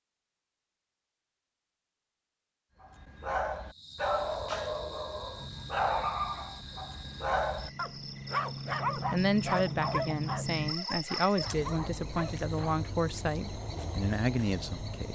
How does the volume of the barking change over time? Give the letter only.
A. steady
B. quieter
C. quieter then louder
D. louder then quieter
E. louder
B.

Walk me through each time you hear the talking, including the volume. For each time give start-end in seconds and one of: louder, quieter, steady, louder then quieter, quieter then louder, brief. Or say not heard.
9.1-15.1 steady.